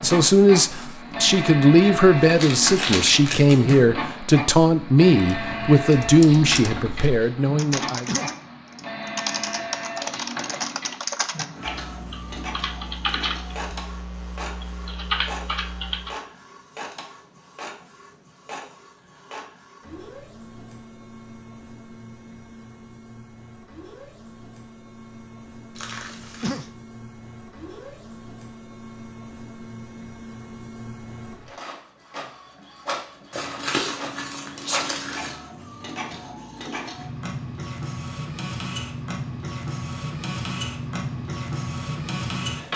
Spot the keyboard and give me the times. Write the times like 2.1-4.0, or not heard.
5.3-16.2.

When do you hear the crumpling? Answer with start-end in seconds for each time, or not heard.
2.2-3.8, 25.8-26.6, 33.3-35.3.